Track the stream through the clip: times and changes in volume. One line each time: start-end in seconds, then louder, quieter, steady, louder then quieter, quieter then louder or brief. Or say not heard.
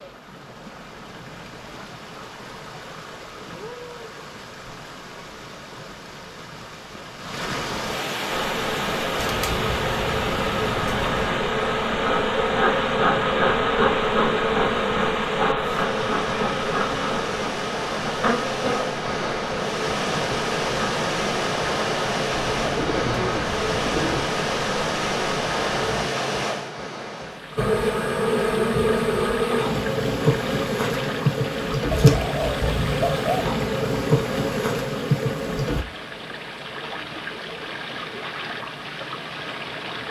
0.0-40.0 louder then quieter.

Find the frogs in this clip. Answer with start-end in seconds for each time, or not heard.
not heard.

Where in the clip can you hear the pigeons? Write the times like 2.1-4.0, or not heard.
9.2-11.2, 22.6-24.3, 31.9-33.5.